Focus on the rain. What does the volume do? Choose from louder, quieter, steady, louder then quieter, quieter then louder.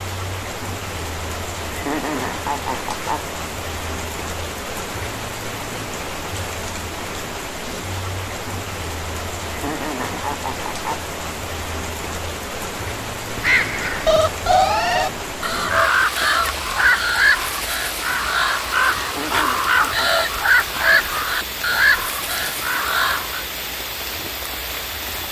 steady.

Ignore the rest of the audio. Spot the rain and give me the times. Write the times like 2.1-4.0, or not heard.
0.0-25.2.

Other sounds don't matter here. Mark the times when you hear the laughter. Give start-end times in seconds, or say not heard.
1.6-3.2, 9.4-11.0, 18.9-20.2.